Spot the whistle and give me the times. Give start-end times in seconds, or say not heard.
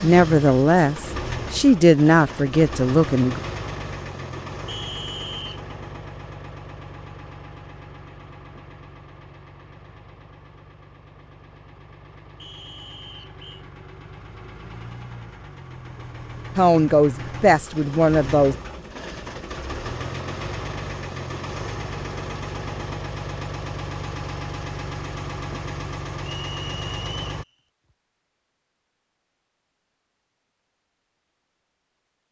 4.7-5.8, 12.3-13.7, 26.4-27.2.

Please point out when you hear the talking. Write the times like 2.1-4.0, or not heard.
0.0-3.4, 16.6-18.6.